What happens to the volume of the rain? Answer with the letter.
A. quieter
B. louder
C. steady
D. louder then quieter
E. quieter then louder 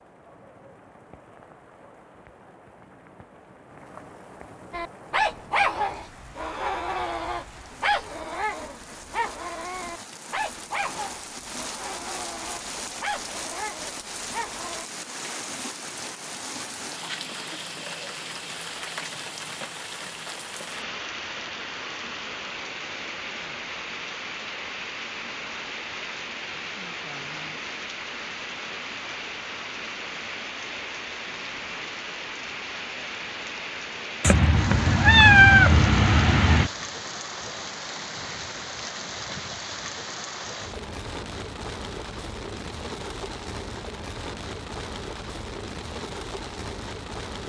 B.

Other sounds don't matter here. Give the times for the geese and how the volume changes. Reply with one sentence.
You can't hear the geese here.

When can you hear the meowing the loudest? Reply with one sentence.
The volume of the meowing peaks at 35 seconds.